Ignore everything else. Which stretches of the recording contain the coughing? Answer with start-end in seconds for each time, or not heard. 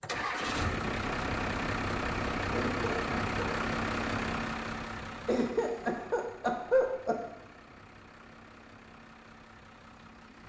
2.5-3.4, 5.2-7.2.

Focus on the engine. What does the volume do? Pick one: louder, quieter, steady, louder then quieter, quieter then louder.
quieter.